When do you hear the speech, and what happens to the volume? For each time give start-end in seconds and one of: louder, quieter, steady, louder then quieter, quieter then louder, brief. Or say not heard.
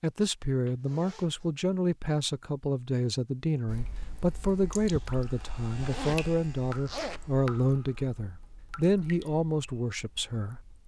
0.0-10.8 steady.